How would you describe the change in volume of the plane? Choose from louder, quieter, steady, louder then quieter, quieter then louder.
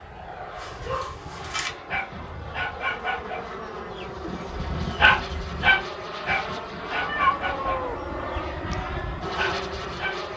louder.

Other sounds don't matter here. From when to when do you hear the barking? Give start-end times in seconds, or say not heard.
0.6-10.2.